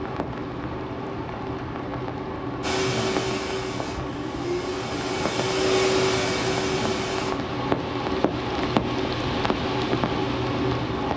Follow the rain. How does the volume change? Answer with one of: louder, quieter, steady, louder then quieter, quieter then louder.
louder.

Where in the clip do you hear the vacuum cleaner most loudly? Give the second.
6 s.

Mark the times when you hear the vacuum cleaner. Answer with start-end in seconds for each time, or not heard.
2.6-7.3.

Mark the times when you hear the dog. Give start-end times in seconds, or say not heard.
not heard.